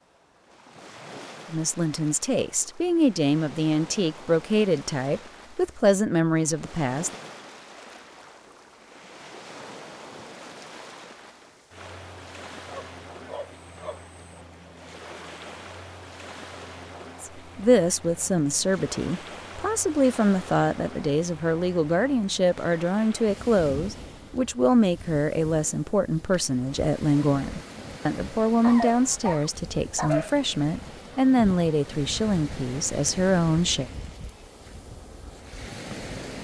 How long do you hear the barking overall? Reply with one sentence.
The barking can be heard for 3 seconds in total.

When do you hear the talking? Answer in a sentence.
The talking can be heard from 1.5 to 7.2 s and from 17.2 to 33.9 s.